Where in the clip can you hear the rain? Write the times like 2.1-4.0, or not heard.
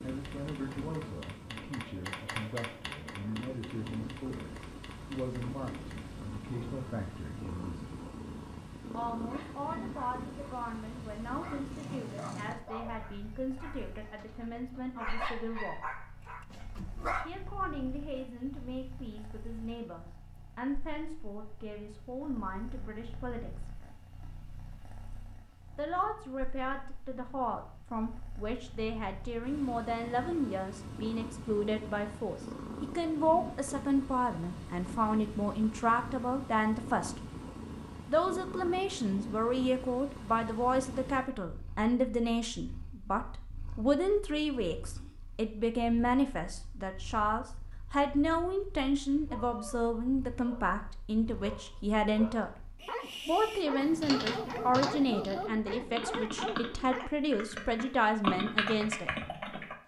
not heard.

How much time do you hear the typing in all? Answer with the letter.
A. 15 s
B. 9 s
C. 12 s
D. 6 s
C.